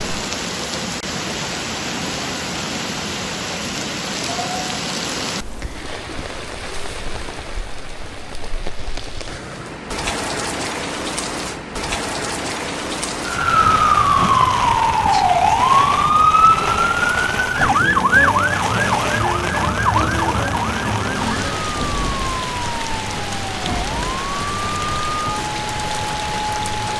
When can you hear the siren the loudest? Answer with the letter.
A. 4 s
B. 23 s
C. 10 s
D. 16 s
D.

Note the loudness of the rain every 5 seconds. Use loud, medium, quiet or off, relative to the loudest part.
loud, medium, loud, loud, loud, loud.